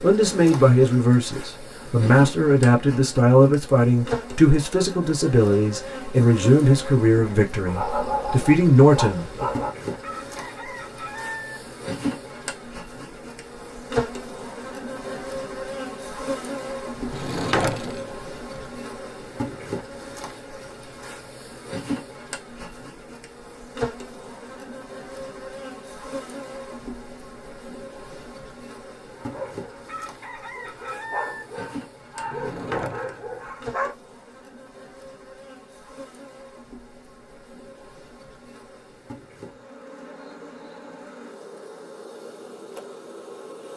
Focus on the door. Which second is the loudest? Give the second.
18 s.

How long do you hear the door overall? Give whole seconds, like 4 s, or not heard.
3 s.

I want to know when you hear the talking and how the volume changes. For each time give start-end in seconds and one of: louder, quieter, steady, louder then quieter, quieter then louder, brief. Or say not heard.
0.0-9.4 steady.